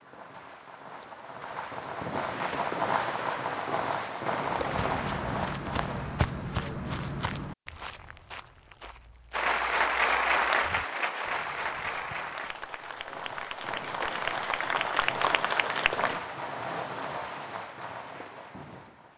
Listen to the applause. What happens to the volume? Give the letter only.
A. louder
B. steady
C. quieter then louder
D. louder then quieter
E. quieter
C.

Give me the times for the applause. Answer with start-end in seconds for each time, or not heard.
9.3-16.2.